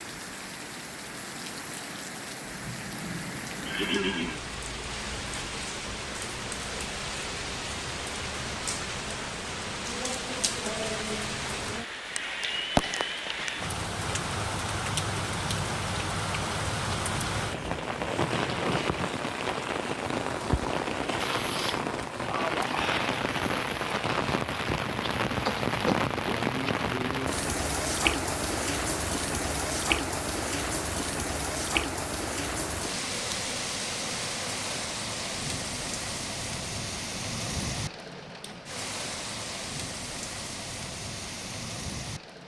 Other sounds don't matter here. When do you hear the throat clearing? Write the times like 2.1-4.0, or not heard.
3.6-4.5, 25.4-26.1.